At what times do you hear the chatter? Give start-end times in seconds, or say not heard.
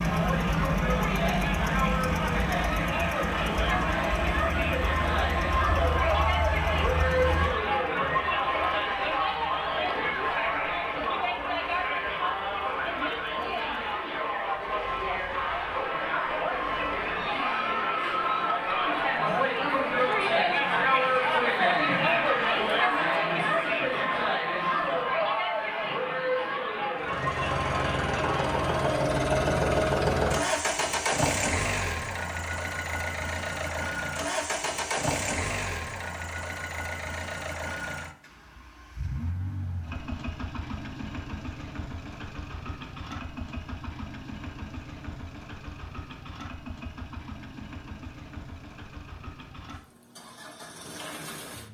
0.0-29.1.